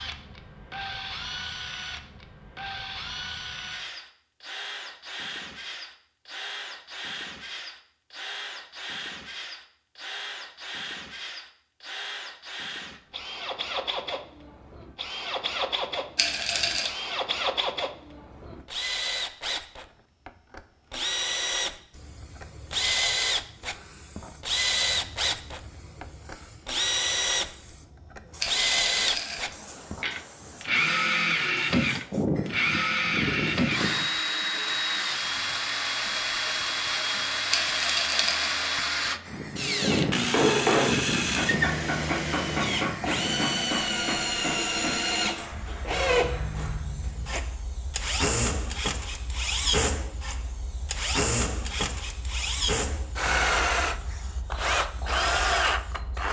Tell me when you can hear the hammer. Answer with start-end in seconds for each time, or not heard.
39.6-47.0.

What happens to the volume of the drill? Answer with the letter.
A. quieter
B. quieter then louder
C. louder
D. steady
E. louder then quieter
C.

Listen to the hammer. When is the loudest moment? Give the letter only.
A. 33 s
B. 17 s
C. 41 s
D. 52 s
C.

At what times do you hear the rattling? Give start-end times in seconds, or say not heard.
16.1-16.9, 28.4-29.4, 37.5-38.6.